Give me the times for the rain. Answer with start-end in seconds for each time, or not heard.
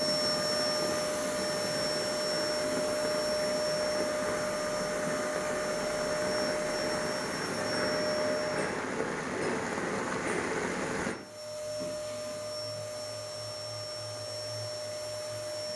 0.0-11.2.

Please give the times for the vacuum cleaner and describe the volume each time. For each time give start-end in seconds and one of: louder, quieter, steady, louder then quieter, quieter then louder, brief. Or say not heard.
0.0-8.9 steady
11.1-15.7 steady.